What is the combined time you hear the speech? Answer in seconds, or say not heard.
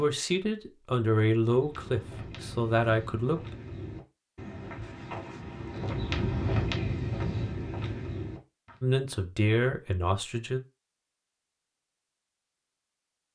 5 s.